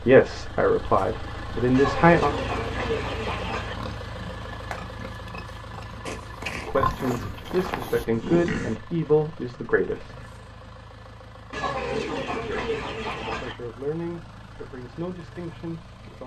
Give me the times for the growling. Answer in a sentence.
The growling can't be heard in this clip.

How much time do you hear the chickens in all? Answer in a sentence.
You can hear the chickens for 4 seconds altogether.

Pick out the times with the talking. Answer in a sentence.
You can hear the talking from 0.0 to 2.3 s, from 6.7 to 10.2 s and from 12.4 to 16.2 s.